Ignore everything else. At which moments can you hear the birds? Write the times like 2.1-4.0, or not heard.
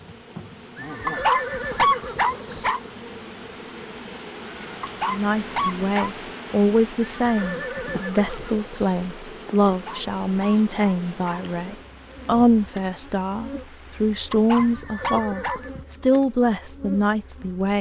not heard.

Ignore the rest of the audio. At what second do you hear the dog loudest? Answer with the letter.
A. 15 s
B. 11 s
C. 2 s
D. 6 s
C.